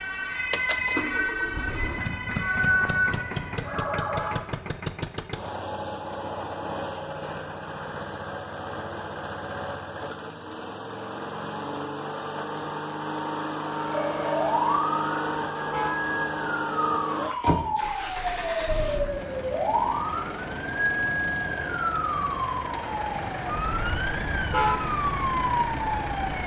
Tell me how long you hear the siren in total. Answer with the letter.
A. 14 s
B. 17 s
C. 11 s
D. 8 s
B.